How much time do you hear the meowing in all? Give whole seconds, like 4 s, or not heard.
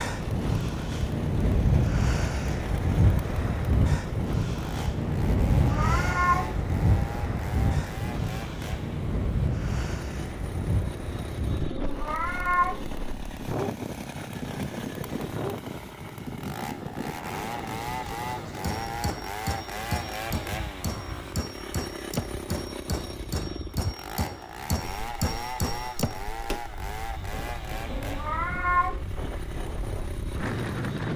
3 s.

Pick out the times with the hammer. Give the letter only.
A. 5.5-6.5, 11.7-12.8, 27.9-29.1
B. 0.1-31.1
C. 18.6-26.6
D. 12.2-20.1
C.